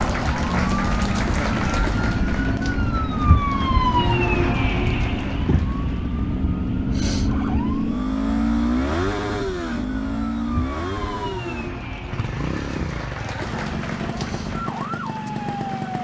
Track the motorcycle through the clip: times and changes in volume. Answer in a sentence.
You can hear the motorcycle from 0.0 to 15.9 s, getting louder then quieter.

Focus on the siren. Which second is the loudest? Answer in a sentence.
The volume of the siren peaks at 4 seconds.